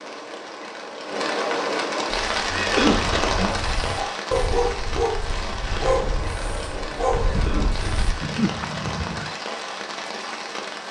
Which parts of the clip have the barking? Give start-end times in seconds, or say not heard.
2.2-8.2.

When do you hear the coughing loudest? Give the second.
3 s.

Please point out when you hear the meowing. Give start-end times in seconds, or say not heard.
2.5-3.6, 8.2-9.3.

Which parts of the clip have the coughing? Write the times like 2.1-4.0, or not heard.
2.5-3.2, 7.2-8.1.